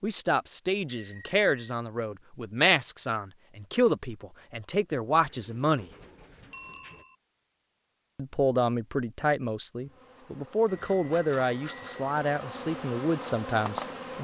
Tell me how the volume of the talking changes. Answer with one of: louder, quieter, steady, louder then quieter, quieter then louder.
steady.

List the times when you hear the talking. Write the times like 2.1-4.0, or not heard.
0.0-5.8, 8.2-14.1.